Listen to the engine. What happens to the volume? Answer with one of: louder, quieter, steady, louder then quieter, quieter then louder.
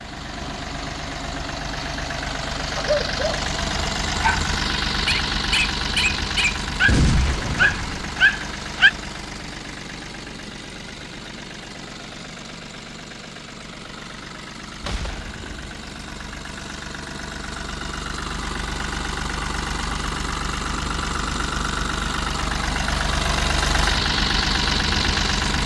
quieter then louder.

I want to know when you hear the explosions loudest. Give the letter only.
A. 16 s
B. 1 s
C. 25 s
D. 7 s
D.